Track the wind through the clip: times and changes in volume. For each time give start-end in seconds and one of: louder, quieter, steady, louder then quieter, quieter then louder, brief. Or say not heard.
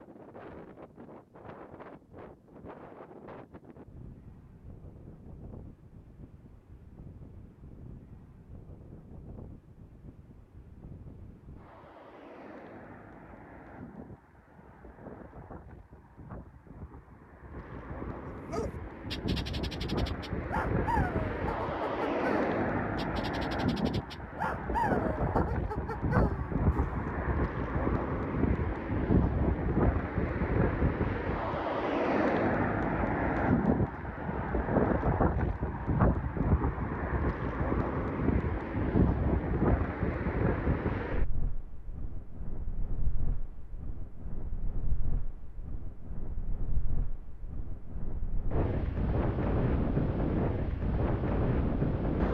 0.0-52.2 louder then quieter.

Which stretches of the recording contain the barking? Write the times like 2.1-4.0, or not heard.
18.5-27.1.